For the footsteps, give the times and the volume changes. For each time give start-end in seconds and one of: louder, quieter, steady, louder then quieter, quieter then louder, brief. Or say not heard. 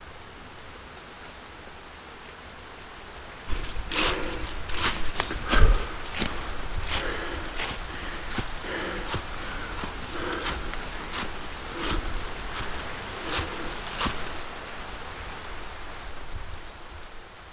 3.5-14.4 quieter.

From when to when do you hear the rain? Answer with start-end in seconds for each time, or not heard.
0.0-17.4.